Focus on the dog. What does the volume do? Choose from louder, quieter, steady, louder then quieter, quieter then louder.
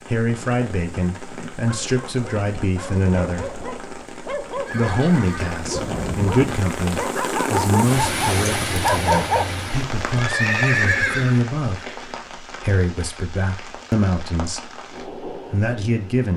louder.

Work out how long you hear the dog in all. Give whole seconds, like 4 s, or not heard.
8 s.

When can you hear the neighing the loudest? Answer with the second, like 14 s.
11 s.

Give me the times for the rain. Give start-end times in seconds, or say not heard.
0.0-16.3.